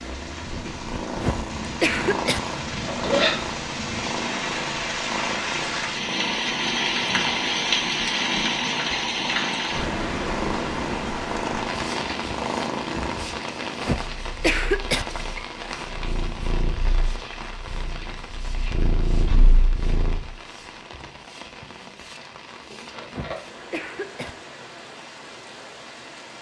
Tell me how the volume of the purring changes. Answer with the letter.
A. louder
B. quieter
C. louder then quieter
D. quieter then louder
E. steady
E.